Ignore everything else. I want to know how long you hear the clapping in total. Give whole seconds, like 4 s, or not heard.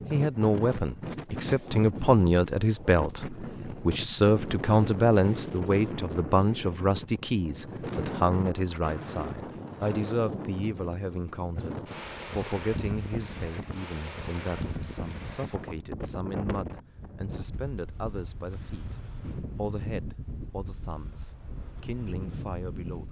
not heard.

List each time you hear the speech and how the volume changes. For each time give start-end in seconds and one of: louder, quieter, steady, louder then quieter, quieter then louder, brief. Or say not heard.
0.0-23.0 quieter.